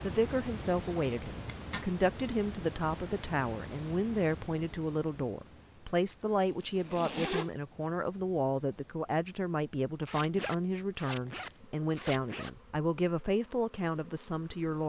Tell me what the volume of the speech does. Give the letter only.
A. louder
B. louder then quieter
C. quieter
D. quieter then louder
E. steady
E.